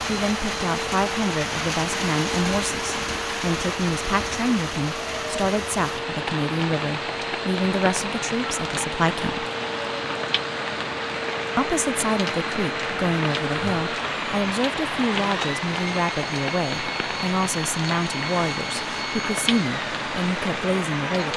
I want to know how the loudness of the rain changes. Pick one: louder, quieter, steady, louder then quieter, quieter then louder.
steady.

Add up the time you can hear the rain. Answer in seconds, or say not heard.
21 s.